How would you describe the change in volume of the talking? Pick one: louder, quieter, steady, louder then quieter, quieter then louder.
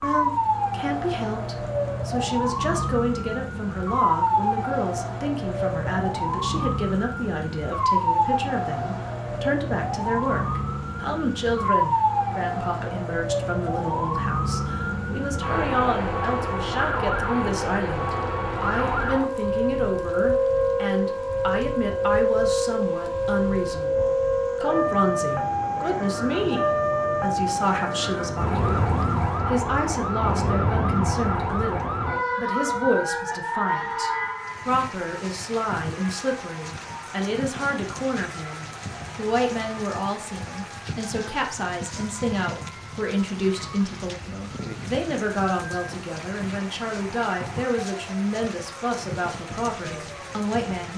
steady.